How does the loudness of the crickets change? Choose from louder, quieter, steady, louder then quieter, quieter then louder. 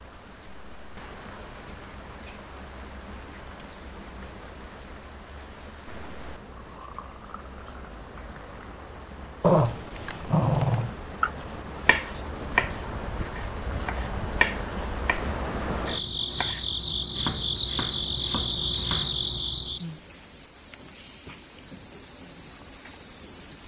louder.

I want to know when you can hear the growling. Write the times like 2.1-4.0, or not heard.
9.4-10.9.